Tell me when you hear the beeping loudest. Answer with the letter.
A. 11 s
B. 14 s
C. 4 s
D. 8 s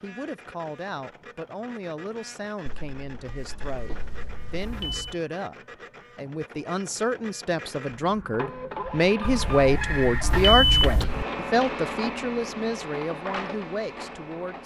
A.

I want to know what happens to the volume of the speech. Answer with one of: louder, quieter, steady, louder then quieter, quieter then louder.
louder then quieter.